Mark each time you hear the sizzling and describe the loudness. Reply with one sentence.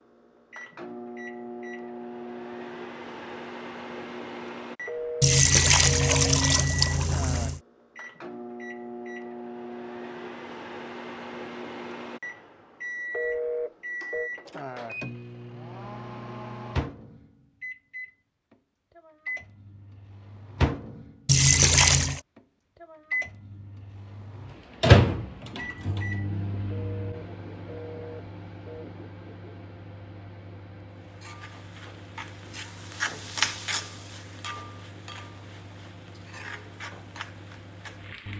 You can hear the sizzling from 31.0 to 38.3 s, getting louder then quieter.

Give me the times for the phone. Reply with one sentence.
You can hear the phone from 4.8 to 6.4 s, from 13.1 to 14.3 s and from 26.7 to 28.9 s.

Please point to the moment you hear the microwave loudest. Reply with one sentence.
The volume of the microwave peaks at 25 seconds.